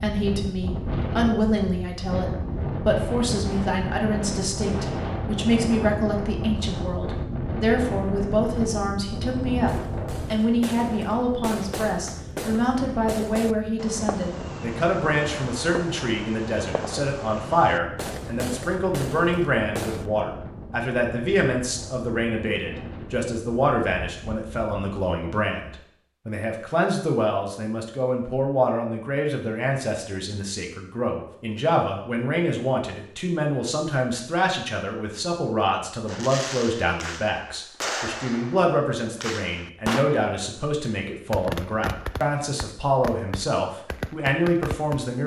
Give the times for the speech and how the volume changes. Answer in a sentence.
You can hear the speech from 0.0 to 45.2 s, at a steady volume.